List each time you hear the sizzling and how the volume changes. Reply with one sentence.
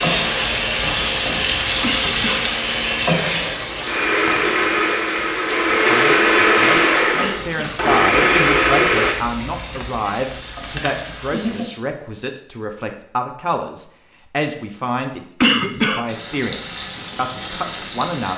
You can hear the sizzling from 0.0 to 11.8 s, getting quieter; and briefly from 16.1 to 18.3 s.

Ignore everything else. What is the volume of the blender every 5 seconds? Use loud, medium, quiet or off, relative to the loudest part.
medium, loud, off, off.